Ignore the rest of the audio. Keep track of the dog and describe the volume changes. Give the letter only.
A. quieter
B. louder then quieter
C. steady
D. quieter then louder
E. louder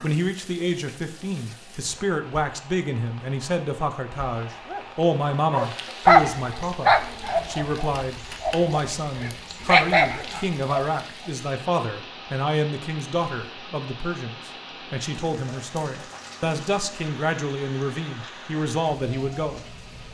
D.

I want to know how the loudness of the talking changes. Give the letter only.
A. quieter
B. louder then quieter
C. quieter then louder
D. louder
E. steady
E.